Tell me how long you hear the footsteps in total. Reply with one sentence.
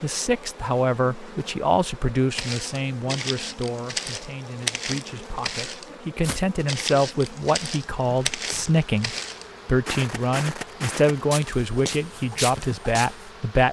The footsteps can be heard for 11 seconds in total.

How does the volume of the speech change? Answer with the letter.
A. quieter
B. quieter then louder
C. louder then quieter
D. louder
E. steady
B.